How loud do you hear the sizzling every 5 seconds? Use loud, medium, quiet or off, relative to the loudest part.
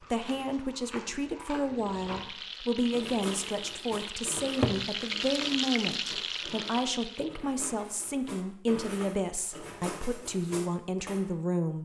medium, loud, off.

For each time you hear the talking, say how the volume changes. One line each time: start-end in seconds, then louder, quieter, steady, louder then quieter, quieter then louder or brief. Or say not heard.
0.1-11.8 steady.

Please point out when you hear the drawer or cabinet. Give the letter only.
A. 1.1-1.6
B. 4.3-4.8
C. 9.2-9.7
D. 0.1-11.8
B.